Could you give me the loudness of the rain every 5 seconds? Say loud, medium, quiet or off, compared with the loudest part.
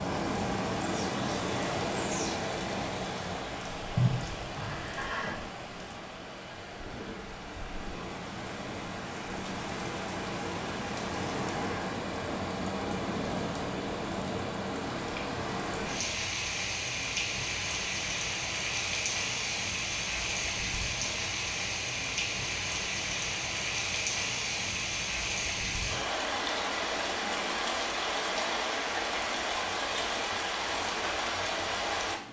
loud, medium, loud, loud, loud, loud, loud.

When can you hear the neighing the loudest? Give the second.
4 s.